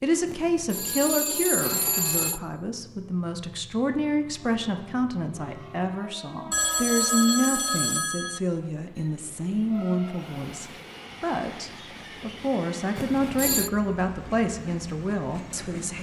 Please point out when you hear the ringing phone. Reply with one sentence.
You can hear the ringing phone from 0.2 to 2.4 s, from 6.5 to 8.4 s and from 12.9 to 13.7 s.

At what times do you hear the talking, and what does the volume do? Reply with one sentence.
The talking can be heard from 0.0 to 15.9 s, at a steady volume.